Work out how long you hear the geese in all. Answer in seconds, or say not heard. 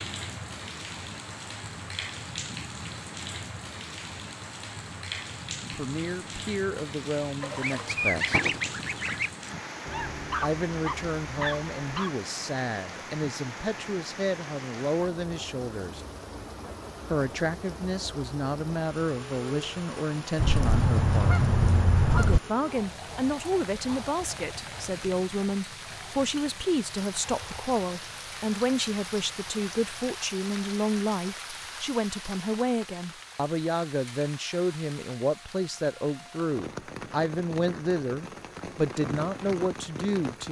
4 s.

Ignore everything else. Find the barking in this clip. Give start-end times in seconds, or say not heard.
9.8-12.1.